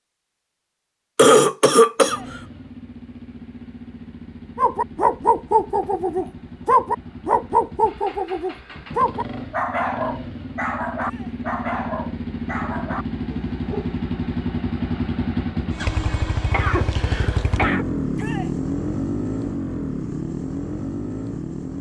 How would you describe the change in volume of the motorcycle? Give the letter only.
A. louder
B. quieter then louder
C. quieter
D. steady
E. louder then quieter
A.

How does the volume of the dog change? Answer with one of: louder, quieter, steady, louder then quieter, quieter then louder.
quieter.